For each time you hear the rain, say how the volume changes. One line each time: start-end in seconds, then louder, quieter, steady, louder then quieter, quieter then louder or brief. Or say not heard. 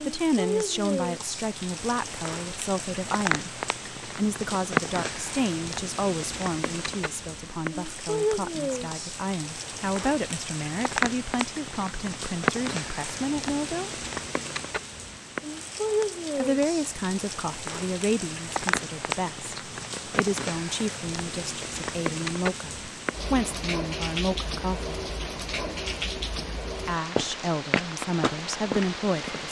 0.0-29.4 steady.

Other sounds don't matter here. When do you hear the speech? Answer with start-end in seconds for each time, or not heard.
0.0-14.1, 16.4-24.9, 26.9-29.4.